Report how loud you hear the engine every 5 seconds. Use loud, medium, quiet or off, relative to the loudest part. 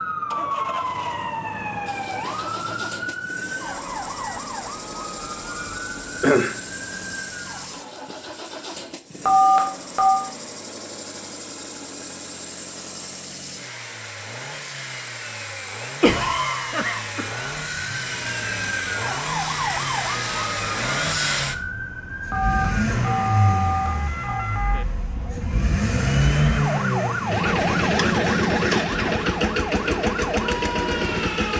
quiet, quiet, quiet, medium, medium, loud, loud.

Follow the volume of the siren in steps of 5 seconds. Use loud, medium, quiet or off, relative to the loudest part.
loud, medium, off, loud, loud, loud, loud.